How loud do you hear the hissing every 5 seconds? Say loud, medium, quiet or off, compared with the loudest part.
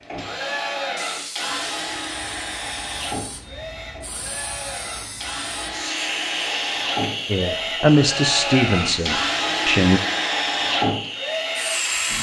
medium, loud, loud.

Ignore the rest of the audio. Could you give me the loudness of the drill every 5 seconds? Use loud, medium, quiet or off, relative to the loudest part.
medium, loud, loud.